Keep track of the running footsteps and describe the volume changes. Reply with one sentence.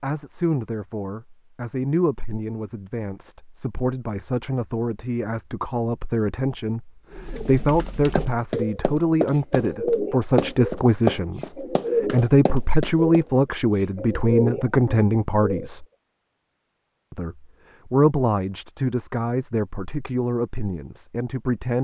The volume of the running footsteps goes up, then down.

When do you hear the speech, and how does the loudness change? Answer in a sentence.
The speech can be heard from 0.0 to 15.8 s, getting louder; and from 17.1 to 21.8 s, getting quieter.